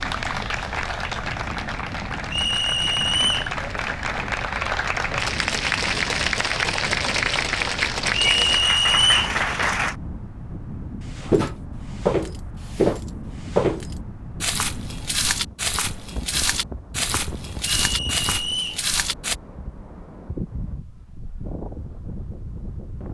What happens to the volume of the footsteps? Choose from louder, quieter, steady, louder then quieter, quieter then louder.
quieter.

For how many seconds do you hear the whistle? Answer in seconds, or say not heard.
3 s.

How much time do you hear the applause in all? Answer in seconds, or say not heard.
10 s.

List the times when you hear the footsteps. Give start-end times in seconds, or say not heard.
11.0-19.4.